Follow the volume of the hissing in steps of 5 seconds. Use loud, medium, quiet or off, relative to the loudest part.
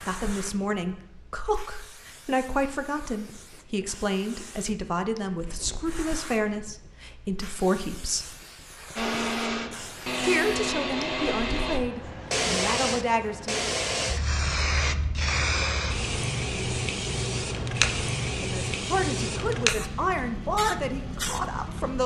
quiet, quiet, loud, loud, medium.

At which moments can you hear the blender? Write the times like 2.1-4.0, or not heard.
8.9-11.8.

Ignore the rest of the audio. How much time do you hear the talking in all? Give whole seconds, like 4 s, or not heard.
15 s.